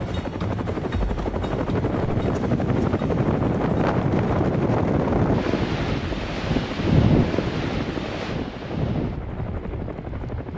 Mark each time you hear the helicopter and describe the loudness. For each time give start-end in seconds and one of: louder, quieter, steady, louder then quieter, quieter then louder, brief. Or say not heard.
0.0-10.5 quieter.